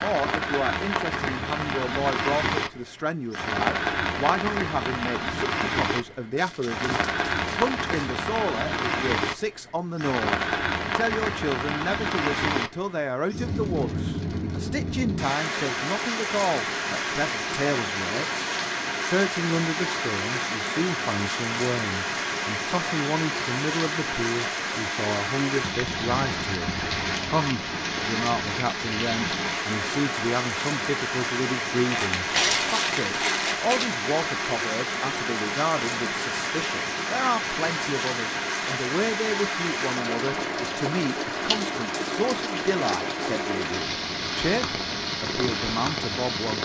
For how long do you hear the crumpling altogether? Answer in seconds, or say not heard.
4 s.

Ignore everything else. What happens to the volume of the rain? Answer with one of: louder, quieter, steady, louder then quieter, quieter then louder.
steady.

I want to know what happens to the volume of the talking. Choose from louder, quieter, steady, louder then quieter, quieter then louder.
steady.